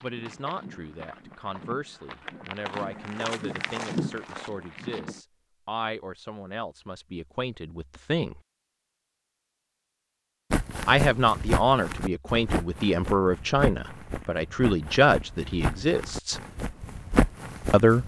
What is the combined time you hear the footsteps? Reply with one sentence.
You can hear the footsteps for 13 seconds altogether.